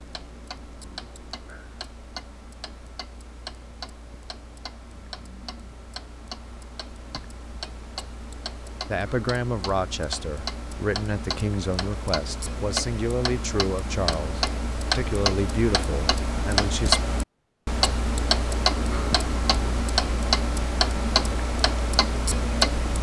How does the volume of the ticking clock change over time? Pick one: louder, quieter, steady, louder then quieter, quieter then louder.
louder.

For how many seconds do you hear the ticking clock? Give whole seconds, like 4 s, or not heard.
23 s.